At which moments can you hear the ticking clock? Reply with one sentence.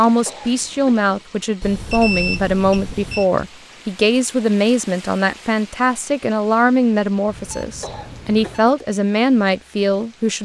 The ticking clock can't be heard in this clip.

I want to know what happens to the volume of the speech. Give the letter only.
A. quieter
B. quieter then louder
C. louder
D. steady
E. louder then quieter
D.